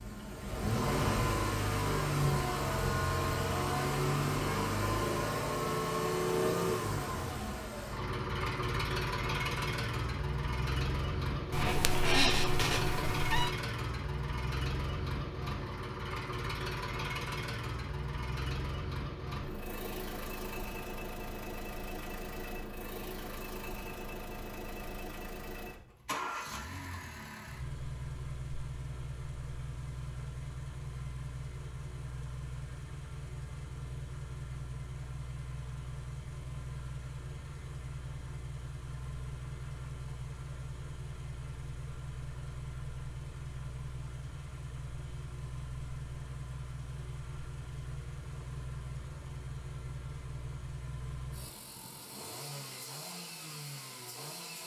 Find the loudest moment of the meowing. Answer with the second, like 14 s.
12 s.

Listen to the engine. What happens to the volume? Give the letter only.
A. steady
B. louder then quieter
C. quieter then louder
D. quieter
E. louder
D.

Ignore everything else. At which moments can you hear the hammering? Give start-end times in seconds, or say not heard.
not heard.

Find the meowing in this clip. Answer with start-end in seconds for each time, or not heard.
11.5-13.5.